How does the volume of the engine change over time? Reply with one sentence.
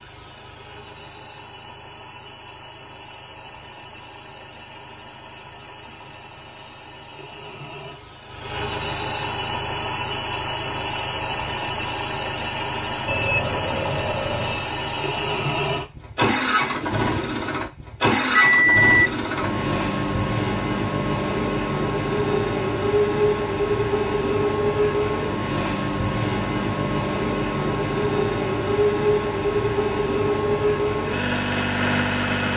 The volume of the engine goes up.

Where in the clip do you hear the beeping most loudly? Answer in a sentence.
The volume of the beeping peaks at 19 seconds.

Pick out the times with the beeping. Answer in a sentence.
You can hear the beeping from 13.1 to 14.7 s and from 18.4 to 19.1 s.